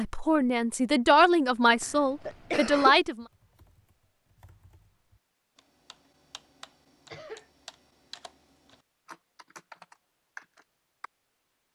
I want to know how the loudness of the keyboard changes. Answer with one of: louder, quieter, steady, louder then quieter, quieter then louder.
louder.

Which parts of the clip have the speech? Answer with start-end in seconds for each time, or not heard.
0.0-3.2.